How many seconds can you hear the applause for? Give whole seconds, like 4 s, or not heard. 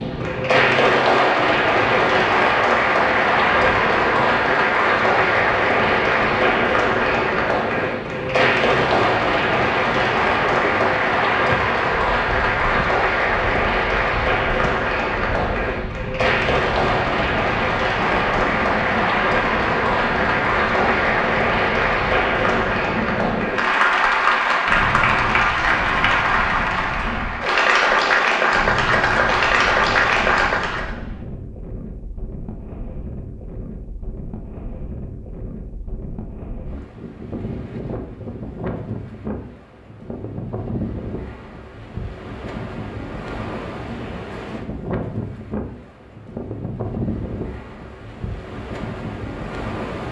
31 s.